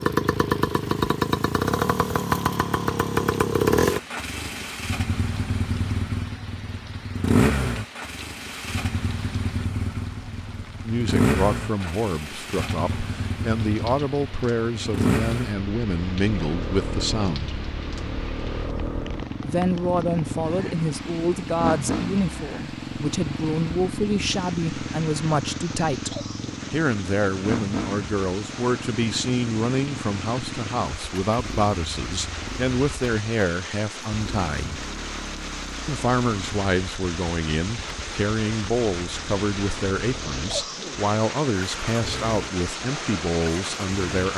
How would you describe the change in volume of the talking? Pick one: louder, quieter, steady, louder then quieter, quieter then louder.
steady.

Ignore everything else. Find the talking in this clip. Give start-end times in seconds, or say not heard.
10.8-17.6, 19.4-34.9, 35.9-44.3.